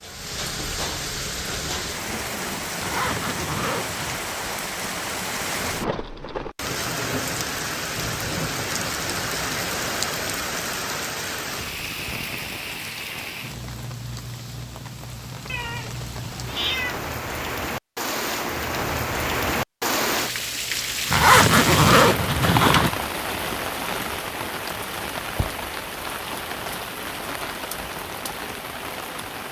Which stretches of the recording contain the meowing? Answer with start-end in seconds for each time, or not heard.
15.4-17.0.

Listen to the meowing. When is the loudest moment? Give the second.
17 s.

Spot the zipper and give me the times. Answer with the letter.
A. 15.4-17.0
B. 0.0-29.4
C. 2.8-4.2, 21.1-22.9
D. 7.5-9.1
C.